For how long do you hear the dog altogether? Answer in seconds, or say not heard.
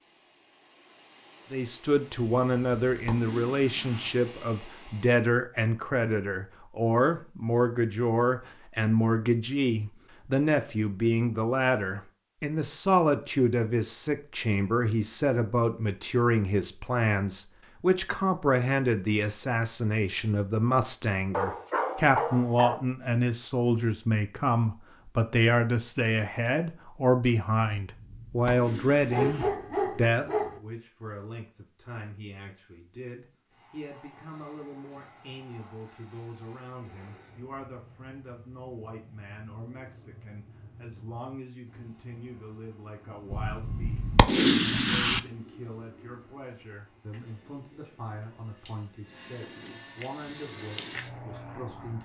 3 s.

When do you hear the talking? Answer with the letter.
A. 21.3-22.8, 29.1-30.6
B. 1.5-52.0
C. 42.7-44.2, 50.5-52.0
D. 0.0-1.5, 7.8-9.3
B.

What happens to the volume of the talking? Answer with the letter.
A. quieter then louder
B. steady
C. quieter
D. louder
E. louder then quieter
C.